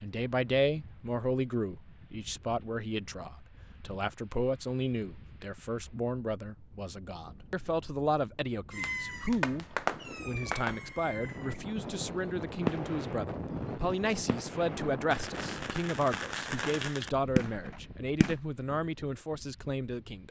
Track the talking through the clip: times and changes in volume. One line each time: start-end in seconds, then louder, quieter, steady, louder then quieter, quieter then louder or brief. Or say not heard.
0.0-20.2 steady.